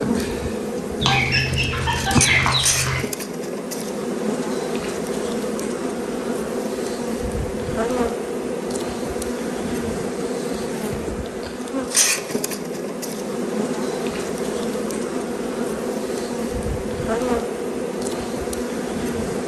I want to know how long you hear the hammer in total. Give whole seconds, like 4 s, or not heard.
not heard.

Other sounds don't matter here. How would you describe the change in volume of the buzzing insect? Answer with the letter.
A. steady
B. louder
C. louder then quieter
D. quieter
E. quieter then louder
A.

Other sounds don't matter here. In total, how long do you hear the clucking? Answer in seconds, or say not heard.
2 s.